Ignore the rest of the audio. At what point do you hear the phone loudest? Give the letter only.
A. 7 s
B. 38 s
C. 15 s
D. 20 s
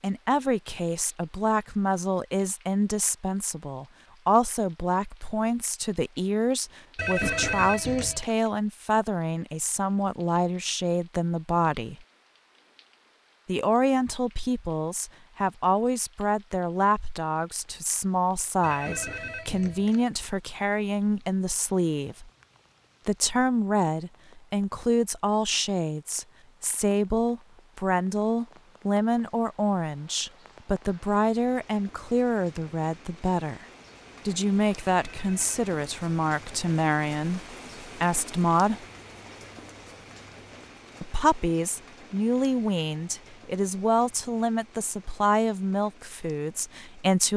A.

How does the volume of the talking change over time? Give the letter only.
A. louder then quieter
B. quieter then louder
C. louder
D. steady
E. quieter
D.